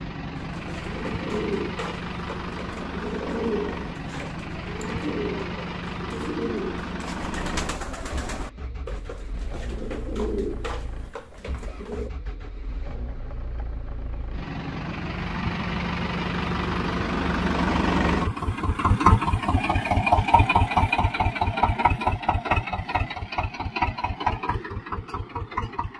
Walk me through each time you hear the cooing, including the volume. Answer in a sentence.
You can hear the cooing from 0.3 to 12.1 s, at a steady volume.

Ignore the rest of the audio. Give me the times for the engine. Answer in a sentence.
You can hear the engine from 0.0 to 25.9 s.